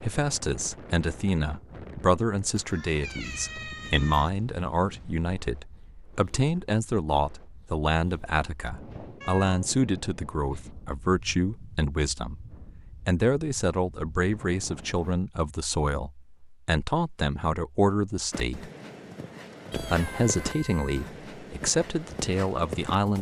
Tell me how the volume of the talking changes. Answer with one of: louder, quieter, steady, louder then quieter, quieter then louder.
steady.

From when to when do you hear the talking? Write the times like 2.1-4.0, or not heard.
0.0-12.4, 13.1-18.7, 19.7-23.1.